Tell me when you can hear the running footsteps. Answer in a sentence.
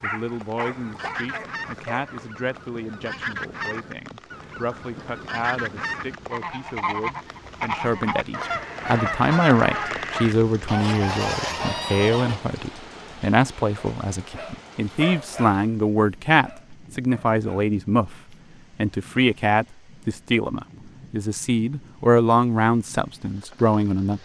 You can't hear the running footsteps here.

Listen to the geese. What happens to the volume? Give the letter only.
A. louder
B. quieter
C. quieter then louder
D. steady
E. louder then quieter
A.